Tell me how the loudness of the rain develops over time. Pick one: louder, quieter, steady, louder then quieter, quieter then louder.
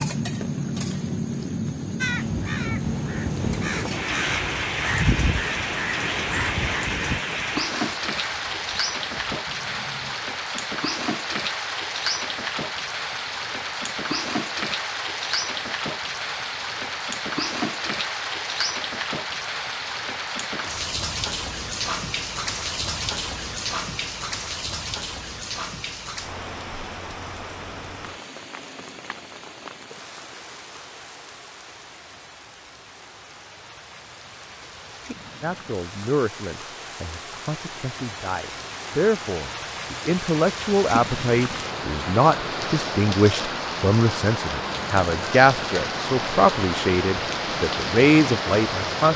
quieter then louder.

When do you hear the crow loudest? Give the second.
5 s.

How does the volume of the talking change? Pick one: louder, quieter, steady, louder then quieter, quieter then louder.
louder.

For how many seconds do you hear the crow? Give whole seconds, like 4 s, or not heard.
8 s.